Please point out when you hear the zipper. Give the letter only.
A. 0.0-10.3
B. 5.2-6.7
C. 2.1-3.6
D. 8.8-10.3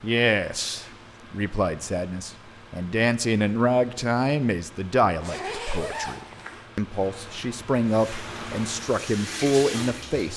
B.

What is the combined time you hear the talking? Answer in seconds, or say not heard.
10 s.